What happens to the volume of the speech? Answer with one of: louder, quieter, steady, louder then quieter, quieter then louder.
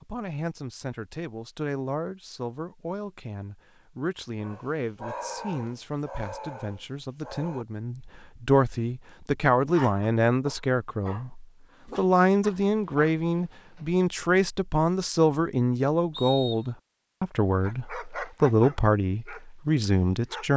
louder.